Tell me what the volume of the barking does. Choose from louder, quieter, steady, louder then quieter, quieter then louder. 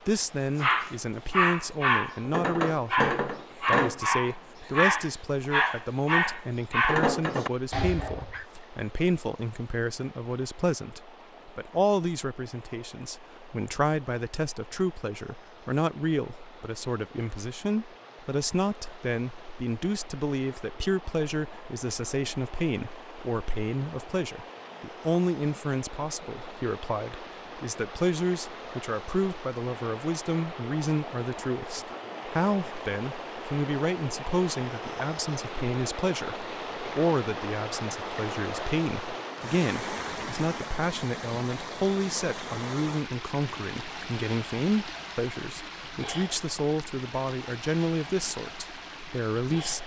steady.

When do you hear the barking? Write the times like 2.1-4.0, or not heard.
0.6-8.4.